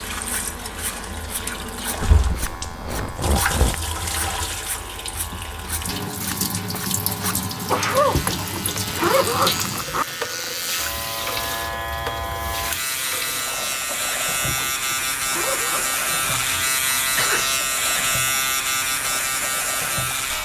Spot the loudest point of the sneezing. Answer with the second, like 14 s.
8 s.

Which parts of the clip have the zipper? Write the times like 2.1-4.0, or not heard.
2.1-3.9, 8.1-10.1, 14.4-16.4.